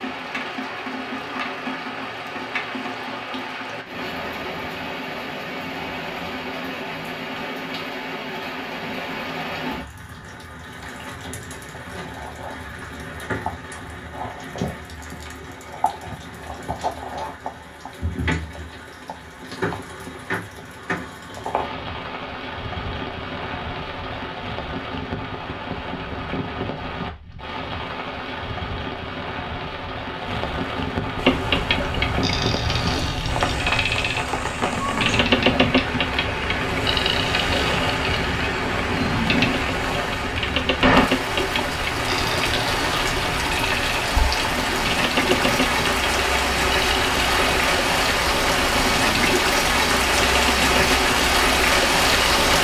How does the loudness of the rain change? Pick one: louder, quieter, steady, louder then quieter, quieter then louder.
louder.